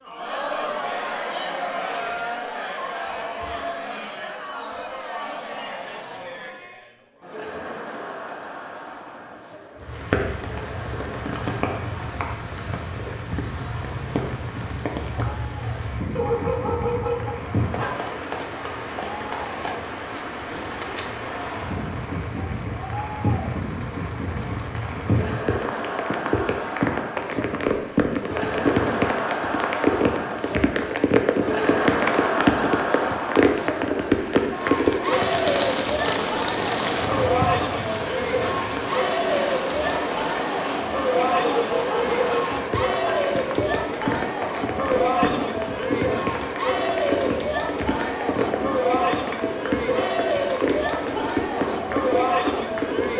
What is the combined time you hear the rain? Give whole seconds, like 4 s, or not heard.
43 s.